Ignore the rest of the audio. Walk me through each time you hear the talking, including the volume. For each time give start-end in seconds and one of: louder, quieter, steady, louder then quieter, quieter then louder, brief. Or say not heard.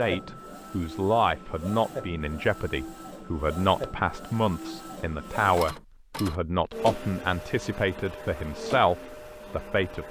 0.0-10.0 steady.